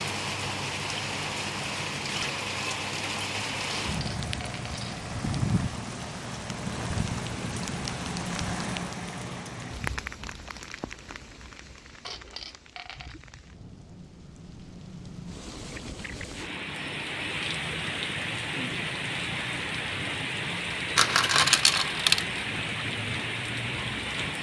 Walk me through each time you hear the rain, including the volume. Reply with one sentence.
You can hear the rain from 0.0 to 24.3 s, getting quieter then louder.